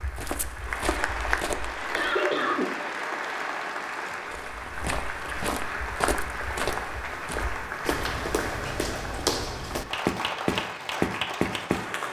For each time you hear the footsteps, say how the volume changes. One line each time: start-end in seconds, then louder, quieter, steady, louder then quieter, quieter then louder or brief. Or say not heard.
0.0-1.9 brief
4.3-11.8 louder.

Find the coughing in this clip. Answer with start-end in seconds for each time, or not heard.
1.9-2.8.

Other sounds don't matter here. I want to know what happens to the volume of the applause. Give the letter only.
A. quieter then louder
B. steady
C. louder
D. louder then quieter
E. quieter
B.